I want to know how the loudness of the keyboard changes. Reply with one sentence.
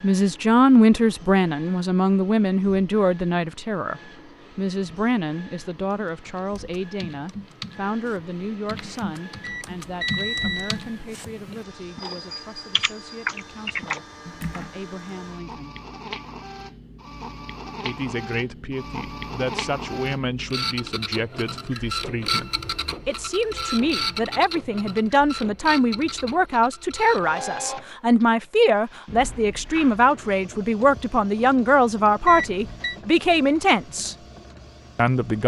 The volume of the keyboard goes up.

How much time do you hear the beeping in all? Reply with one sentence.
You can hear the beeping for 2 seconds altogether.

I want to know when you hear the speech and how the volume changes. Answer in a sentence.
The speech can be heard from 0.0 to 15.8 s, getting quieter; from 17.8 to 34.1 s, getting louder; and briefly from 35.0 to 35.4 s.